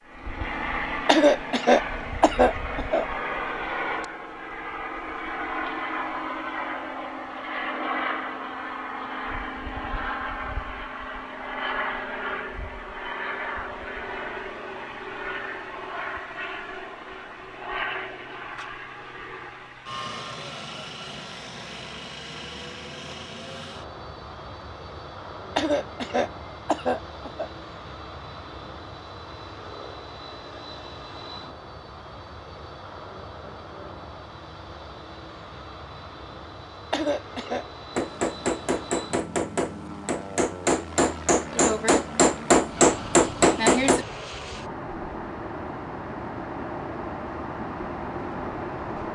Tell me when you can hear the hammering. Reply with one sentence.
You can hear the hammering from 38.0 to 44.0 s.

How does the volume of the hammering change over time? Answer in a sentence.
The volume of the hammering goes up.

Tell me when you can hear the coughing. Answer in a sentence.
The coughing can be heard from 1.1 to 3.0 s, from 25.6 to 27.5 s and from 36.9 to 37.6 s.